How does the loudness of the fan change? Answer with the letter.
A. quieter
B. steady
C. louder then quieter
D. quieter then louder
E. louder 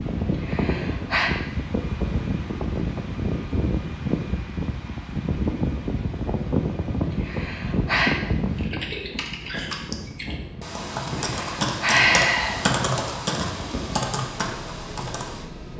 A.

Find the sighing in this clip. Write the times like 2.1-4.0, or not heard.
0.4-1.3, 7.2-8.2, 11.2-12.7.